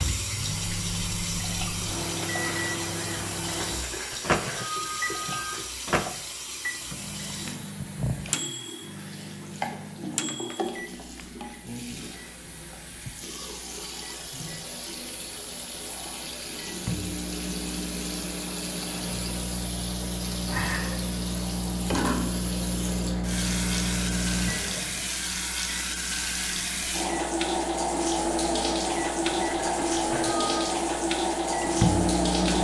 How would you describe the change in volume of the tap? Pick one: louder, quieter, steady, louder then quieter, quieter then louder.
louder.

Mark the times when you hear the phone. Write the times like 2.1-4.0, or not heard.
3.5-5.7, 29.2-30.8.